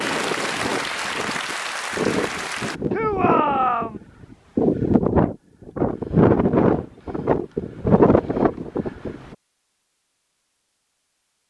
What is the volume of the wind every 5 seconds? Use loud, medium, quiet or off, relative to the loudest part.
medium, loud, off.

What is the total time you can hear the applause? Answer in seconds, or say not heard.
3 s.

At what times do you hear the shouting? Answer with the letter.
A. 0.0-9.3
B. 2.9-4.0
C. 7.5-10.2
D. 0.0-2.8
B.